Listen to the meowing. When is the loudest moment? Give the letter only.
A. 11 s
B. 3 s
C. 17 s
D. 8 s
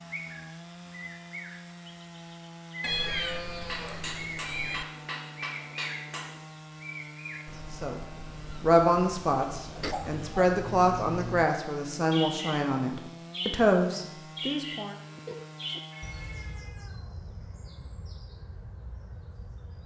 B.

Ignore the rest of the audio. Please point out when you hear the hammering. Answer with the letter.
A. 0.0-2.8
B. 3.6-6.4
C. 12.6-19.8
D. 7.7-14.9
B.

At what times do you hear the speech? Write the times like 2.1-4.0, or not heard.
7.7-14.9.